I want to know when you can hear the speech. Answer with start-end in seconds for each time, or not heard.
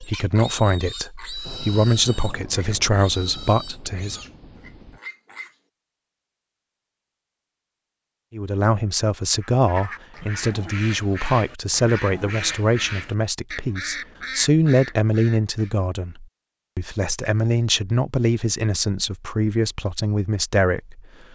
0.0-4.2, 8.3-21.3.